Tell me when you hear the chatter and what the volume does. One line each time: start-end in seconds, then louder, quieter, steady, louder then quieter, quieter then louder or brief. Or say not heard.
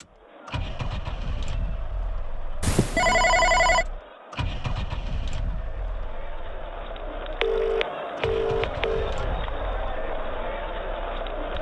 0.0-11.5 louder.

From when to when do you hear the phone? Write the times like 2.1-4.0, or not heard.
2.6-3.9, 7.4-9.2.